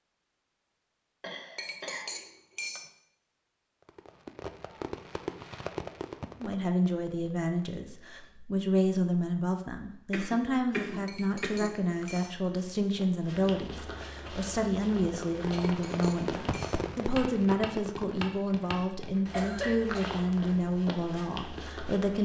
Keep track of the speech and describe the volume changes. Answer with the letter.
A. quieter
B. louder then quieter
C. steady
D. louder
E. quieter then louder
C.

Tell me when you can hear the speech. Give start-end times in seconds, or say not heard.
6.4-22.1.